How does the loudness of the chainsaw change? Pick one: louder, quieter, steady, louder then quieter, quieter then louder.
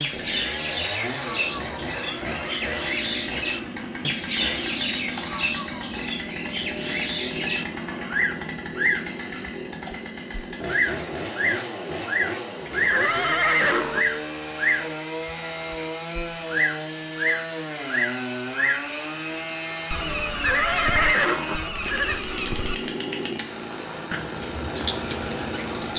steady.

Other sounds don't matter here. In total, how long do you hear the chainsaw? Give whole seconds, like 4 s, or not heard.
26 s.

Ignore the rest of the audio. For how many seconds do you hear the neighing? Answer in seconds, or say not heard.
4 s.